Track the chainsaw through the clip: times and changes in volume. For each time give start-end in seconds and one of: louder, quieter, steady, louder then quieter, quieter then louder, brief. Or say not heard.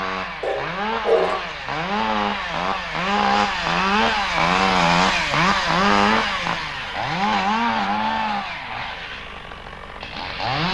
0.0-10.7 louder then quieter.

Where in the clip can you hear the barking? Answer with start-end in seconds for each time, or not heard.
0.4-1.4.